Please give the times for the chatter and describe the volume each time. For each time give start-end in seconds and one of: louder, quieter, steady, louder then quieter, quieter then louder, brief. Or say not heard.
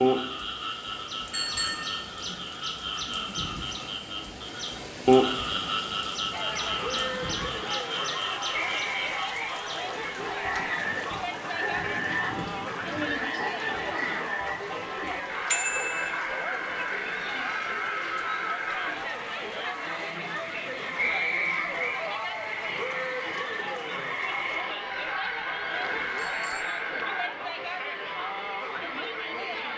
6.3-29.7 steady.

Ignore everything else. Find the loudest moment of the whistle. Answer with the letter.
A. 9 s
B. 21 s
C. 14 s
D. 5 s
B.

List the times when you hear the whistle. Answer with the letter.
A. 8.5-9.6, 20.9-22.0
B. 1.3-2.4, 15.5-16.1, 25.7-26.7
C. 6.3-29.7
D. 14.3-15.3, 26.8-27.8
A.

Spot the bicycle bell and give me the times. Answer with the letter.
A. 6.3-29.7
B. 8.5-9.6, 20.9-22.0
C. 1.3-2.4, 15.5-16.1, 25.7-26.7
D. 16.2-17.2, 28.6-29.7
C.